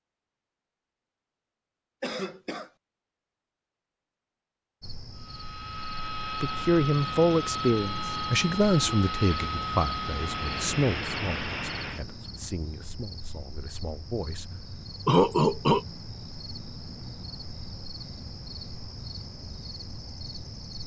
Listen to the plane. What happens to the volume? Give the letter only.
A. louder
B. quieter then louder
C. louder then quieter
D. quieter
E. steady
E.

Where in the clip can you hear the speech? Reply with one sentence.
The speech can be heard from 6.4 to 14.4 s.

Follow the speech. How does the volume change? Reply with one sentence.
The volume of the speech goes down.